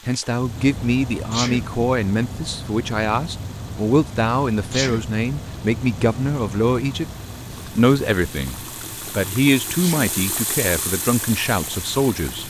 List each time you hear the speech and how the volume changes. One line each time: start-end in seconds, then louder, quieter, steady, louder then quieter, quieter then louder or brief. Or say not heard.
0.1-12.4 steady.